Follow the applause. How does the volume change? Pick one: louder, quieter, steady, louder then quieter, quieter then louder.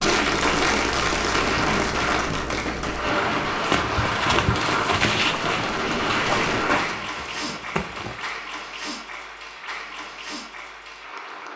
quieter.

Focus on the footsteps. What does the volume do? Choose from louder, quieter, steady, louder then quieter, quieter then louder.
quieter.